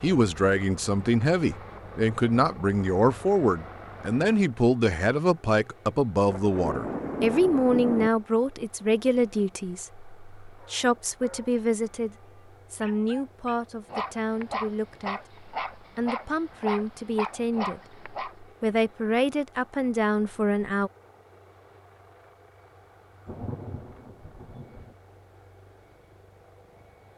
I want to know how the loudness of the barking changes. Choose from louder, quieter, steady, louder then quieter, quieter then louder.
louder.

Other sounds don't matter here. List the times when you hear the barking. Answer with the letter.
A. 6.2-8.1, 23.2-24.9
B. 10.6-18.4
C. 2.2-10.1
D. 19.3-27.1
B.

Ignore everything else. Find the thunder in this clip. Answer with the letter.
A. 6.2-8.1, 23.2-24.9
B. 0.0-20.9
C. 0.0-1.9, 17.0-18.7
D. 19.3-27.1
A.